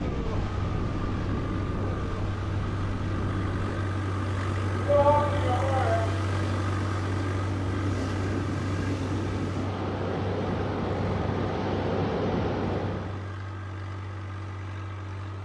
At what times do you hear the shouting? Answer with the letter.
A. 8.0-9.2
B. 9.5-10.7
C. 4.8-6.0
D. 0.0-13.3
C.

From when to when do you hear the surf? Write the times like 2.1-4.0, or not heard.
0.0-13.3.